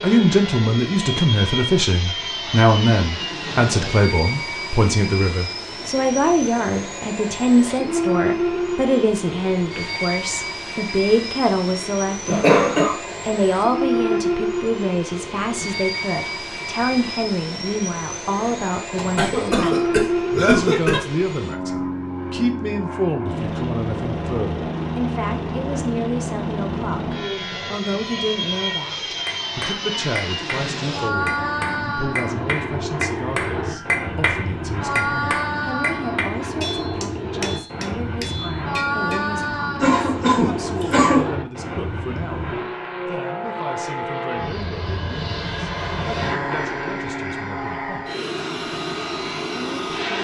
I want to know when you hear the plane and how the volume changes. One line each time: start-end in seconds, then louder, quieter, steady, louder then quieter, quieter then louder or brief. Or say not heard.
0.0-50.1 steady.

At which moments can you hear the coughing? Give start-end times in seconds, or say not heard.
12.2-12.9, 18.9-21.0, 39.8-41.2.